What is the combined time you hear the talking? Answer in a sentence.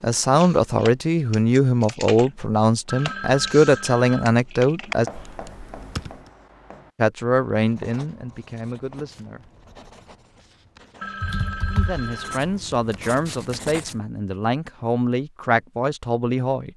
The talking can be heard for 13 seconds in total.